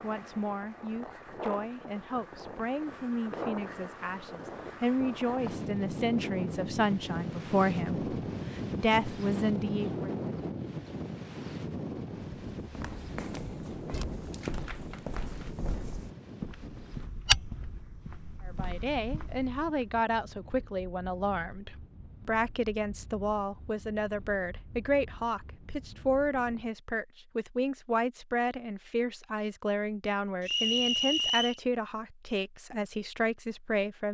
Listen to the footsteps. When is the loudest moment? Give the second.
17 s.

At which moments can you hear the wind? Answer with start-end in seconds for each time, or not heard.
0.0-26.8.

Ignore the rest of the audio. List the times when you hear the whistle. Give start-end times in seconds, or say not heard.
30.4-31.6.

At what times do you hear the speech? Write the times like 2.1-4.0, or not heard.
0.0-10.2, 18.4-34.0.